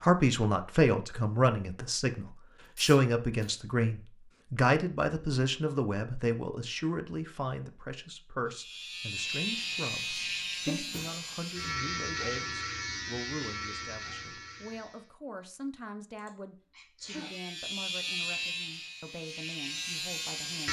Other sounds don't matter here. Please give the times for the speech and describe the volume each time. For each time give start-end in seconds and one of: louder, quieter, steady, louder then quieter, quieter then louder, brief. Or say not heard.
0.0-20.6 quieter.